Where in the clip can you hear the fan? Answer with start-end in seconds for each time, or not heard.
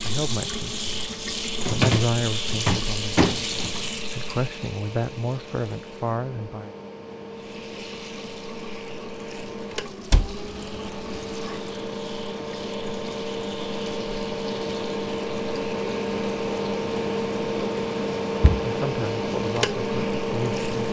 0.0-20.8.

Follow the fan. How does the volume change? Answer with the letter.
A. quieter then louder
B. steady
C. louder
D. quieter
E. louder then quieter
C.